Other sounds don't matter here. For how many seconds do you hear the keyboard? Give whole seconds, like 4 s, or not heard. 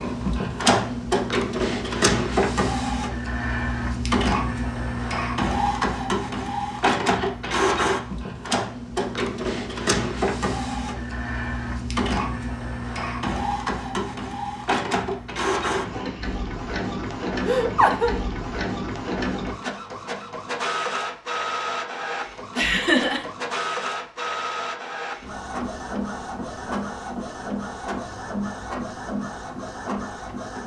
not heard.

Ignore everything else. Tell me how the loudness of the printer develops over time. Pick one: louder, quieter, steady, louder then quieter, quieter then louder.
quieter.